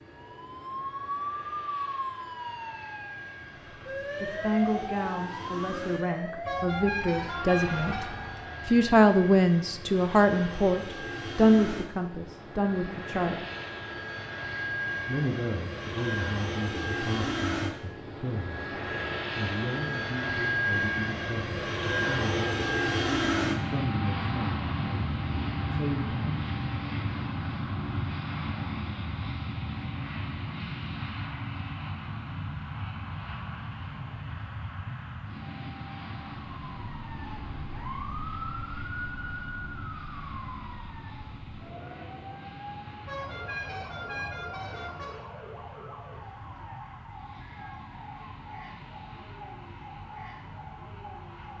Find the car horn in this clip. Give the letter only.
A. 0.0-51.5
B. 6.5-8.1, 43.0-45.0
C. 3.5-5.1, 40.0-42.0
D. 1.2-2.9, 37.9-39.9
B.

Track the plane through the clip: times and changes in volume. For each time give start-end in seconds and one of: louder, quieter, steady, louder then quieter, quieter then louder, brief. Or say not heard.
0.0-51.5 louder then quieter.